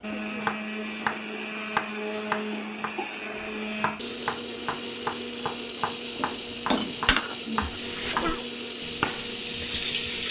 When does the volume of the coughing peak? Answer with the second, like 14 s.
8 s.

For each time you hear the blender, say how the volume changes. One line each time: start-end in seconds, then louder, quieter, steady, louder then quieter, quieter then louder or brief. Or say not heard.
0.0-10.2 steady.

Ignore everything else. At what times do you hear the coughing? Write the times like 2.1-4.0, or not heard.
2.5-3.2, 7.6-8.4.